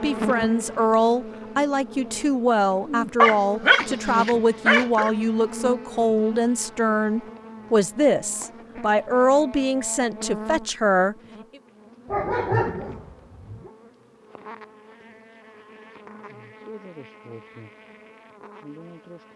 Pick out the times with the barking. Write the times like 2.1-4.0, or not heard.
3.2-5.1, 12.1-13.7.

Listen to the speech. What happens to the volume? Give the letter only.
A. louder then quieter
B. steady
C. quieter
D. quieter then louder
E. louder
B.